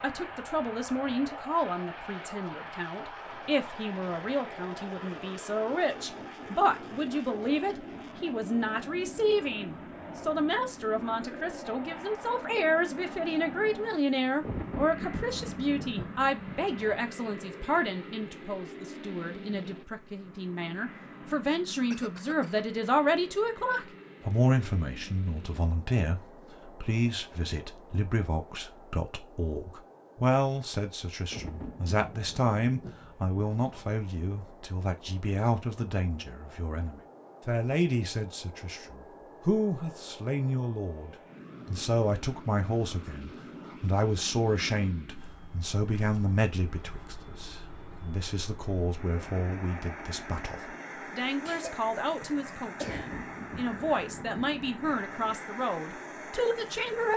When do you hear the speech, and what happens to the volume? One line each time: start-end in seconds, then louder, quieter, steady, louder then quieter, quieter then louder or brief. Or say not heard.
0.0-57.1 steady.